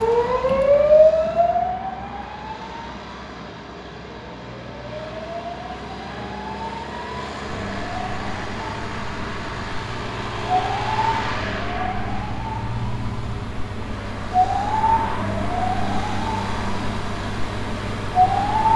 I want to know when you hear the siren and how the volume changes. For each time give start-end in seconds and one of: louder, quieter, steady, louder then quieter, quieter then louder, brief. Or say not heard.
0.0-18.7 quieter then louder.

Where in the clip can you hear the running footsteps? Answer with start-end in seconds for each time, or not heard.
not heard.